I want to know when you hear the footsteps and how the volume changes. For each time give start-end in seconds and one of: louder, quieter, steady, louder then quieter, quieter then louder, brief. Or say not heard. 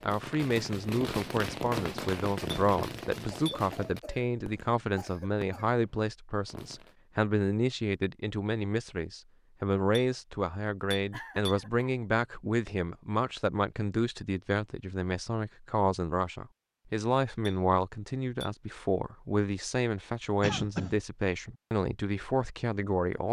not heard.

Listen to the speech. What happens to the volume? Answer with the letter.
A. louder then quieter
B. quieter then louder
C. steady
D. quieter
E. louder
C.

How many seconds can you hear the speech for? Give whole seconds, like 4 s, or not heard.
23 s.